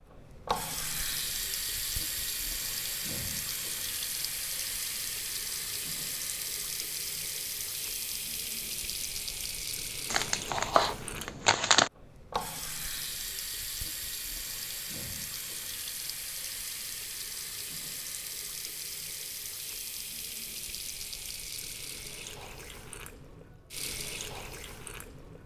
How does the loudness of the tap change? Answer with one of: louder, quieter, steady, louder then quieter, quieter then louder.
quieter.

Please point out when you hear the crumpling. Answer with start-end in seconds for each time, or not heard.
10.1-11.9.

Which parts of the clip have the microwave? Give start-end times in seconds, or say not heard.
not heard.